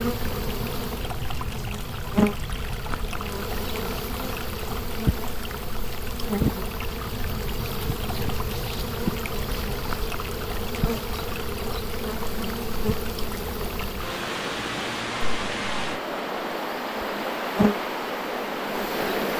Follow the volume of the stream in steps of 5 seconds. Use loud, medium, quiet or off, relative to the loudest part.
medium, medium, medium, loud.